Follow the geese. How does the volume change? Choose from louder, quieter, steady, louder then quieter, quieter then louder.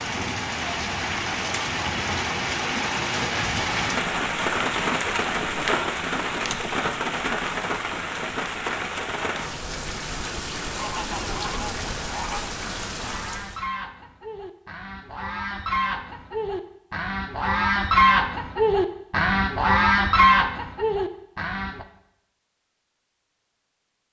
louder.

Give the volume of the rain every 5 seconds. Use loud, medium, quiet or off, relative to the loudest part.
loud, loud, medium, off, off.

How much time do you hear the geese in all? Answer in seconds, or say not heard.
11 s.